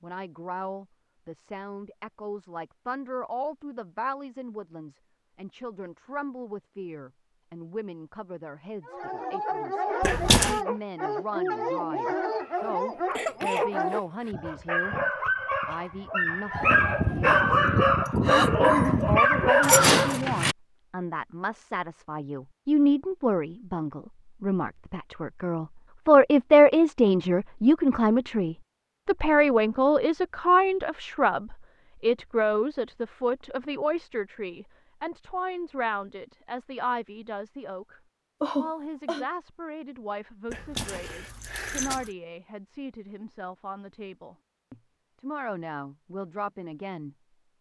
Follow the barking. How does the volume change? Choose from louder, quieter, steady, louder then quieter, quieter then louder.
louder.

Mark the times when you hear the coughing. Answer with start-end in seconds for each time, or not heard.
12.3-14.3, 18.2-19.1, 38.4-39.2.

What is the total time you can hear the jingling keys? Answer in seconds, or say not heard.
3 s.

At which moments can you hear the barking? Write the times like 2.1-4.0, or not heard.
8.8-20.2.